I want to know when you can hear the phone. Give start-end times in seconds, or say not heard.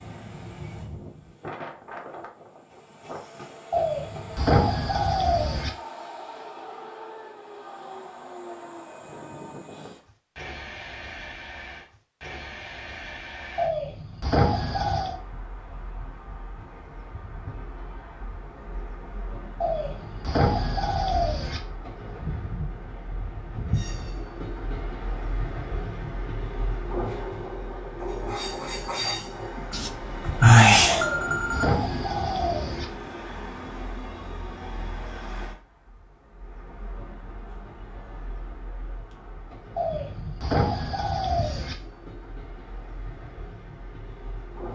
29.7-31.6.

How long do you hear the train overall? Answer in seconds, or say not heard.
45 s.